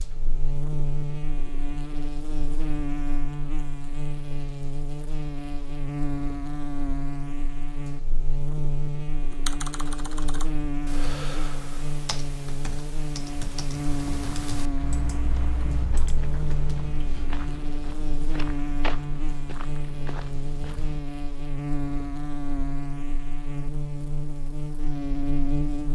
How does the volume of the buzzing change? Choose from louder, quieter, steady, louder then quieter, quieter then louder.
steady.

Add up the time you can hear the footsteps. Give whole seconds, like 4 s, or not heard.
7 s.